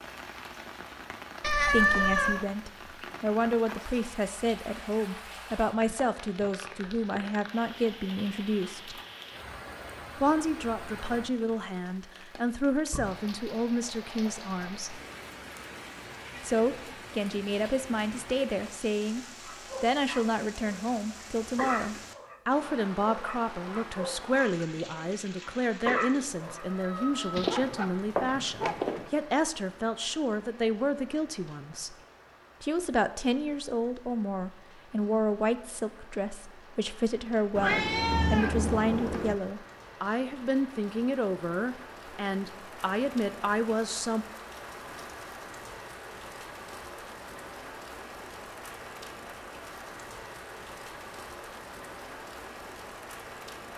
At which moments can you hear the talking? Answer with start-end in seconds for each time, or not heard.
1.7-9.0, 10.2-15.0, 16.4-31.9, 32.6-44.2.